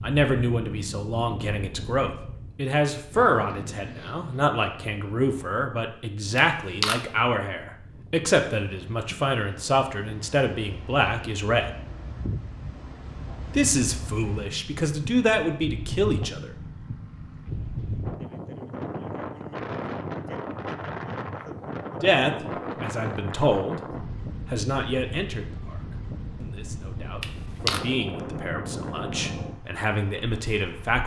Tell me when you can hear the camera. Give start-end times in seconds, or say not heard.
6.3-7.0, 27.2-27.8.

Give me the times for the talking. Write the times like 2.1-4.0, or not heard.
0.0-11.8, 13.5-16.5, 22.0-31.0.